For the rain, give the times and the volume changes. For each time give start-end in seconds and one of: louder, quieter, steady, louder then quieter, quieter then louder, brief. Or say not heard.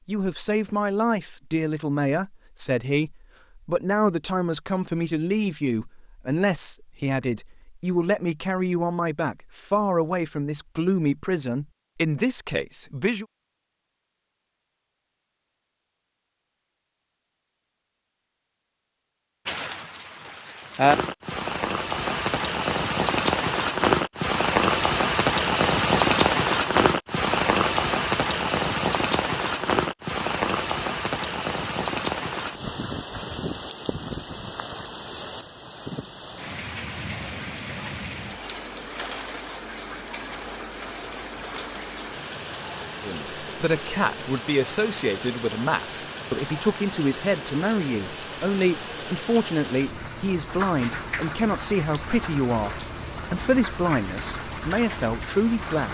19.4-55.9 quieter.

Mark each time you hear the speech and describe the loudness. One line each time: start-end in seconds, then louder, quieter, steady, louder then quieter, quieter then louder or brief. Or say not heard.
0.1-13.2 steady
43.0-55.9 steady.